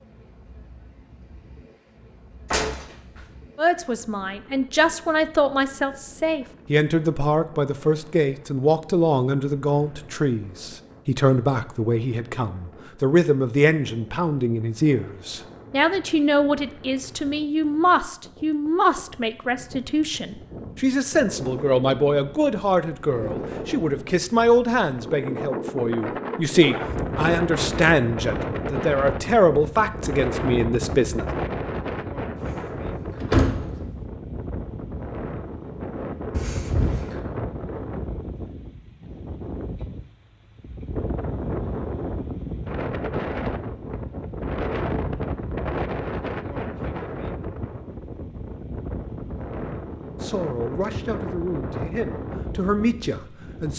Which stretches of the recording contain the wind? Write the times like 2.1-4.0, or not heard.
0.0-53.7.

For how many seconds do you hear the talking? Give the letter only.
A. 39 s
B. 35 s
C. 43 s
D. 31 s
D.